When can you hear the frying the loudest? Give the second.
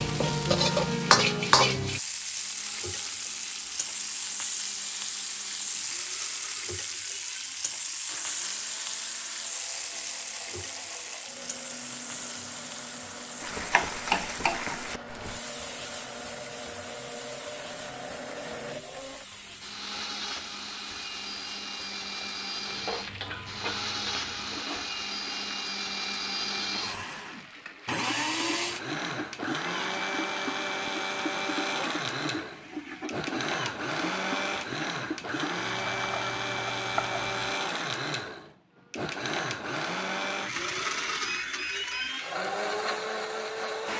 1 s.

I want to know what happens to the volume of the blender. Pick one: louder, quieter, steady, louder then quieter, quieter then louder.
louder.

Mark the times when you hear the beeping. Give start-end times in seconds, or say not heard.
40.5-42.1.